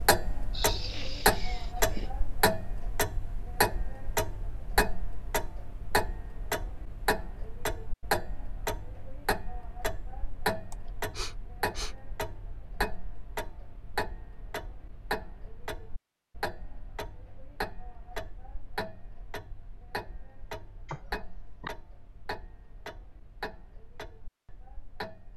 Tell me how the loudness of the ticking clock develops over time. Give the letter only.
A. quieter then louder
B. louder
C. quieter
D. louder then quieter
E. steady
C.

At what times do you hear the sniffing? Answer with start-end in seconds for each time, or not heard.
0.5-2.1, 10.7-11.9, 20.9-21.7.